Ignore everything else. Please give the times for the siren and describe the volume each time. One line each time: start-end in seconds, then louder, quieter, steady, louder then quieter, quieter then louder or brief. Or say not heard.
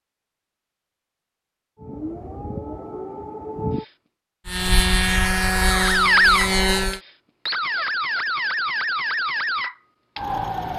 1.8-3.9 brief
5.7-10.7 quieter.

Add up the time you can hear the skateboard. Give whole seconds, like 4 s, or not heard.
not heard.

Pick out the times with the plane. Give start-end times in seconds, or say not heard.
4.5-7.0.